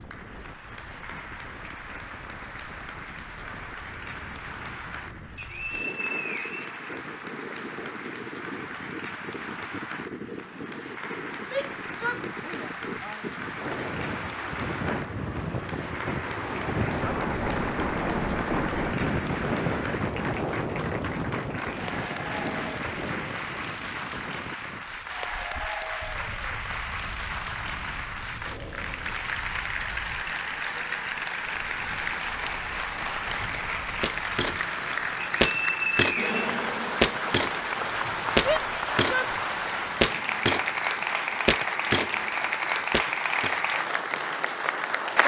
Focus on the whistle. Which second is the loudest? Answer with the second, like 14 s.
36 s.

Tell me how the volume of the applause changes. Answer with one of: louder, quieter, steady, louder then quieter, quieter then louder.
louder.